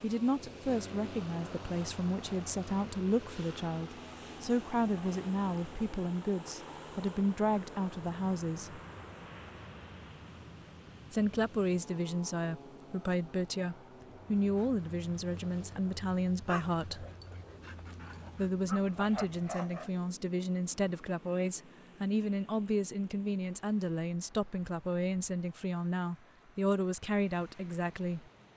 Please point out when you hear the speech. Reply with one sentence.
You can hear the speech from 0.0 to 8.8 s, from 11.1 to 17.1 s and from 18.4 to 28.2 s.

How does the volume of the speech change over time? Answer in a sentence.
The volume of the speech stays about the same.